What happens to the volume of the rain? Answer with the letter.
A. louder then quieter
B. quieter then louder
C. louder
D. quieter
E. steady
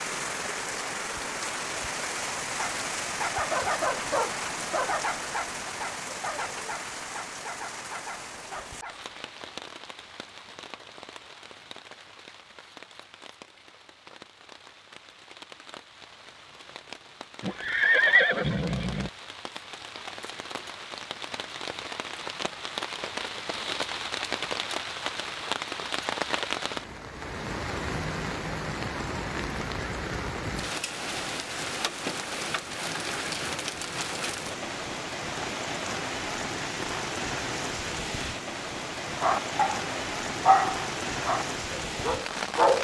B.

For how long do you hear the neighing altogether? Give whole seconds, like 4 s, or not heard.
2 s.